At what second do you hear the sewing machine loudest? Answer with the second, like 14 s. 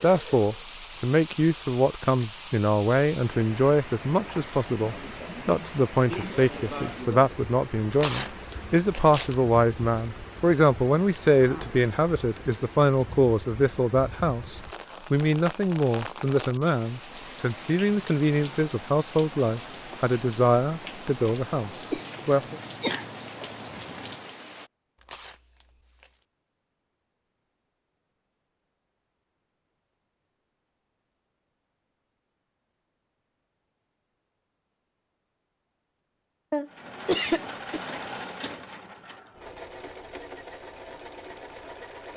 38 s.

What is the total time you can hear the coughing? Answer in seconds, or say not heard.
5 s.